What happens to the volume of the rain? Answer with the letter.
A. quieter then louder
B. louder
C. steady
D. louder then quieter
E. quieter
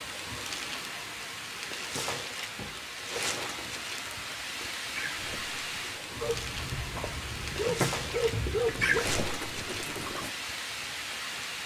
C.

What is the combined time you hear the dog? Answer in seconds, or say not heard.
3 s.